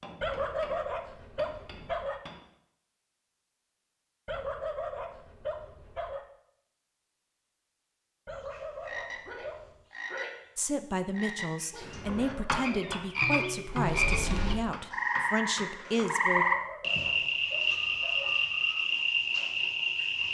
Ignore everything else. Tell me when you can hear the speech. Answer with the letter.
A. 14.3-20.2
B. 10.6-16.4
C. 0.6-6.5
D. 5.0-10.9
B.